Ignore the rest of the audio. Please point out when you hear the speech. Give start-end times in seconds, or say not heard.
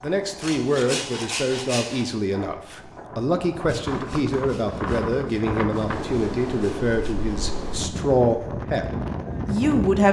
0.0-8.8, 9.4-10.0.